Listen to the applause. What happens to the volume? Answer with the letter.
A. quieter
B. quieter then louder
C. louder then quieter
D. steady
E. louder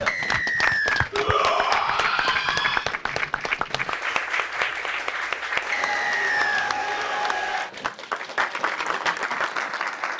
D.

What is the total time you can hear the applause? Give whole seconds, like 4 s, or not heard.
10 s.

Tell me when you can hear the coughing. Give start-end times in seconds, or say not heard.
not heard.